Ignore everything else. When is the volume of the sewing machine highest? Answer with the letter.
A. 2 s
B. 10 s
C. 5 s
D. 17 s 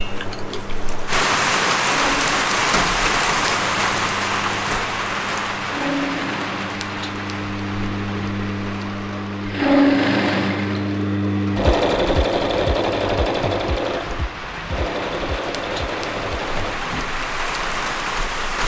B.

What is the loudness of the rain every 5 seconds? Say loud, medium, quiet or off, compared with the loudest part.
loud, medium, quiet, medium.